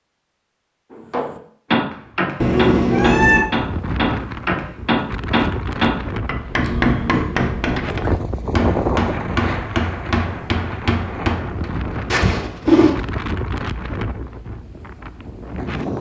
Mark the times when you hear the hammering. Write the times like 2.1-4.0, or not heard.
1.1-11.7.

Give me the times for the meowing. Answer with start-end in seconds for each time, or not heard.
2.4-3.5, 6.6-7.5, 12.1-12.9.